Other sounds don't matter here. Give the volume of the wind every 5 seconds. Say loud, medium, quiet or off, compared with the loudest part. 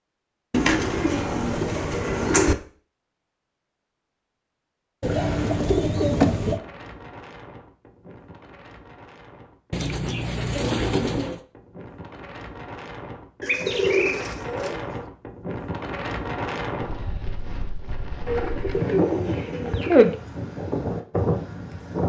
off, quiet, medium, loud, loud.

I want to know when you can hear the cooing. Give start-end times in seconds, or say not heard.
0.5-2.5, 5.0-6.6, 9.7-11.4, 13.4-14.9, 18.2-20.1.